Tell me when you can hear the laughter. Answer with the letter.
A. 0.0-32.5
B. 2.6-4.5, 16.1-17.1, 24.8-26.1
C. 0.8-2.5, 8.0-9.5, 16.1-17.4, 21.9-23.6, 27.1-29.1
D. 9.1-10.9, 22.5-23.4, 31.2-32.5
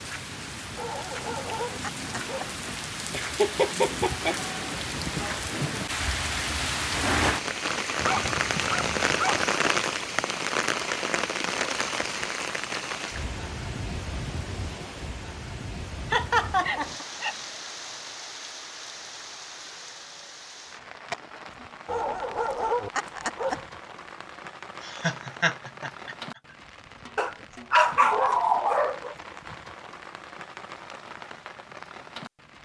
B.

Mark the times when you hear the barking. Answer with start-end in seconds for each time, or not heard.
0.8-2.5, 8.0-9.5, 16.1-17.4, 21.9-23.6, 27.1-29.1.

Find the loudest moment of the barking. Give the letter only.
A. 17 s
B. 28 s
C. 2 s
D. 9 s
B.